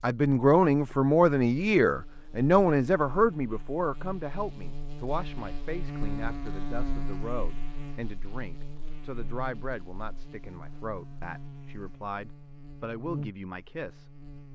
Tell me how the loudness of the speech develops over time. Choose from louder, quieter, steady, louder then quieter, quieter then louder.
quieter.